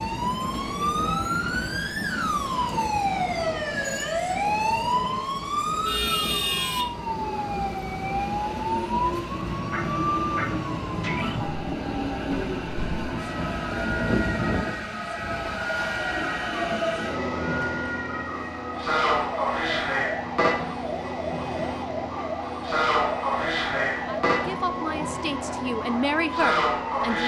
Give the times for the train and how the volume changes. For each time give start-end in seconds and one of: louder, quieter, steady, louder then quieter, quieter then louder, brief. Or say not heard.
0.0-27.2 louder.